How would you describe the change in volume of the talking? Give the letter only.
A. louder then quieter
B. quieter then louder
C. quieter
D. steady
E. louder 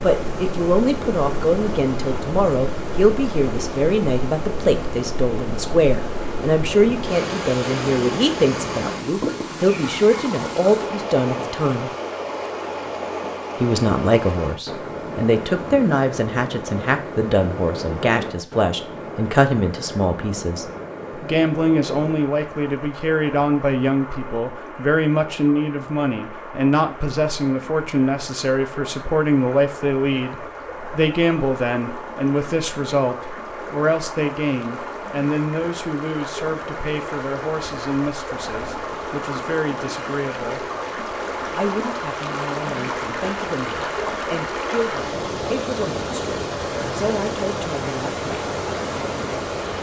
C.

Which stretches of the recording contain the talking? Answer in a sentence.
The talking can be heard from 0.0 to 11.9 s, from 13.6 to 40.6 s and from 41.5 to 48.2 s.